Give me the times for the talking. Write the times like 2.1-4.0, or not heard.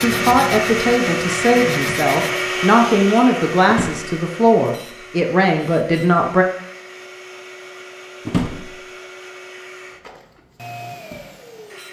0.0-6.5.